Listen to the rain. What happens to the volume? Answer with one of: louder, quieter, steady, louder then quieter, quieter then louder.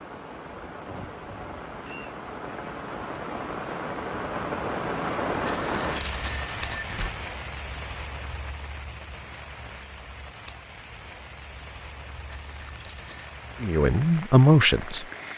louder then quieter.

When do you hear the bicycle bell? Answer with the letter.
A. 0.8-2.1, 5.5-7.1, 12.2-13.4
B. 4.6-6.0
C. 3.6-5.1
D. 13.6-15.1
A.